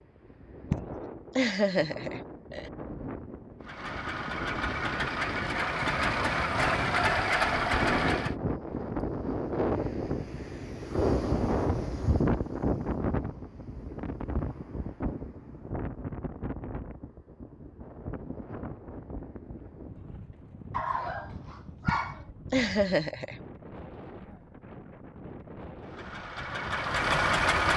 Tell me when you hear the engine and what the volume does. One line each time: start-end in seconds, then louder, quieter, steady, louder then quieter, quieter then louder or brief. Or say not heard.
3.6-8.3 louder
25.8-27.7 brief.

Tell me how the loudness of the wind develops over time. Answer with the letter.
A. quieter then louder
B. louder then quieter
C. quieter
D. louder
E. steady
B.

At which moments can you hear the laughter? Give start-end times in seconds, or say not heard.
0.7-2.7, 21.9-23.4.